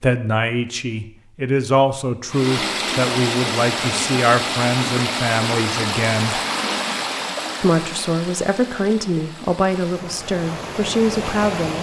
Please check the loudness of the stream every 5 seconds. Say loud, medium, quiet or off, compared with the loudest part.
loud, loud, medium.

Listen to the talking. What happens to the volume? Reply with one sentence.
The loudness of the talking stays about the same.